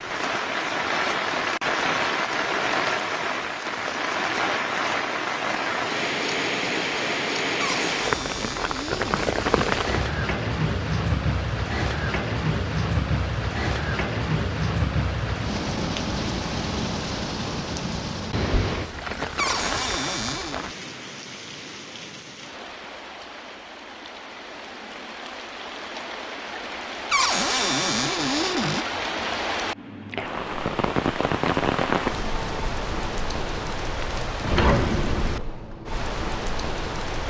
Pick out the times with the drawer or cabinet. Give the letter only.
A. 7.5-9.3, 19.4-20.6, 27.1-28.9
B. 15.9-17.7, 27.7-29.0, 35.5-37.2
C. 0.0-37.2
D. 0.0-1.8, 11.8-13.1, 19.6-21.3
A.